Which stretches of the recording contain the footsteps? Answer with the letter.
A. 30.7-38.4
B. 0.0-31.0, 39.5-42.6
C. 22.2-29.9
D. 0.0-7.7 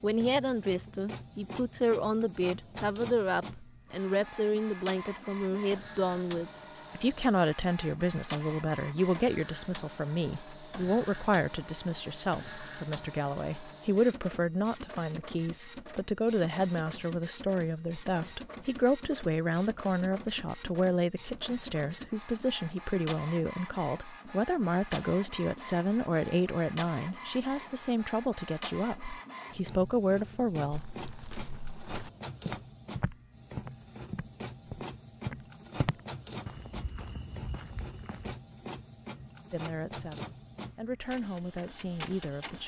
A.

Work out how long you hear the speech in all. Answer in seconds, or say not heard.
34 s.